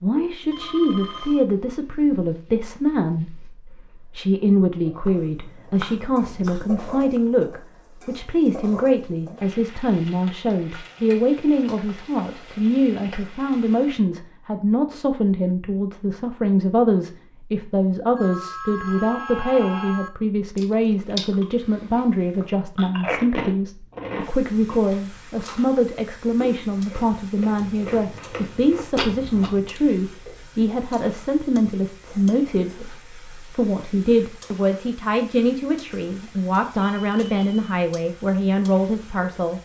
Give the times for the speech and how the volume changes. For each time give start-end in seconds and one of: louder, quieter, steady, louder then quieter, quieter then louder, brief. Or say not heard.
0.0-39.5 steady.